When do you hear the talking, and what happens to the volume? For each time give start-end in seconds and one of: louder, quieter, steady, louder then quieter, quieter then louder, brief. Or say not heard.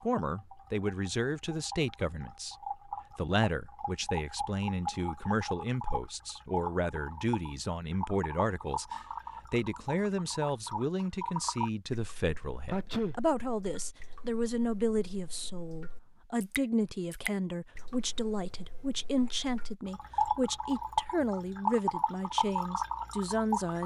0.0-23.8 steady.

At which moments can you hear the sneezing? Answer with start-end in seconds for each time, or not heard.
12.7-13.2.